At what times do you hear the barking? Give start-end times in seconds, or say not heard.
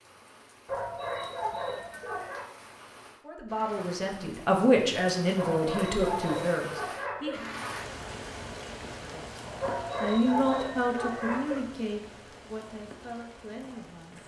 0.7-2.5, 5.3-7.4, 9.6-11.6.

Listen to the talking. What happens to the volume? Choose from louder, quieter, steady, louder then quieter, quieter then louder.
quieter.